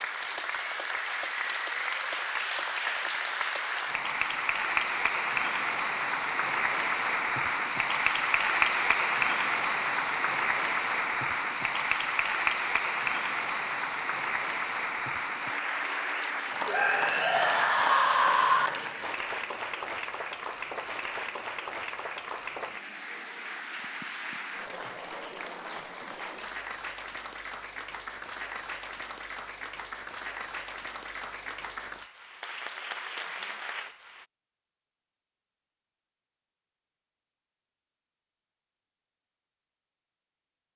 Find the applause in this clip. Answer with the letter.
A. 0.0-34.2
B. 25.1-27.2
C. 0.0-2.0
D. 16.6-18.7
A.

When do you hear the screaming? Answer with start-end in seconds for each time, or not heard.
16.6-18.7.